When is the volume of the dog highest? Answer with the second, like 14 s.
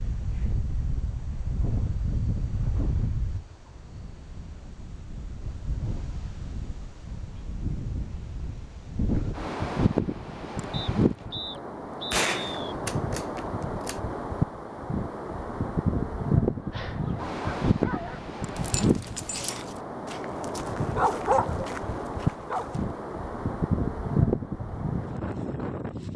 21 s.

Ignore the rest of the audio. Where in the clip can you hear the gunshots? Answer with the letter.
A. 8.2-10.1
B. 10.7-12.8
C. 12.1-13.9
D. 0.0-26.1
C.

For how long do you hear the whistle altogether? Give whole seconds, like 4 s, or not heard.
2 s.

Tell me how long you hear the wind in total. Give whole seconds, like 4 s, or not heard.
26 s.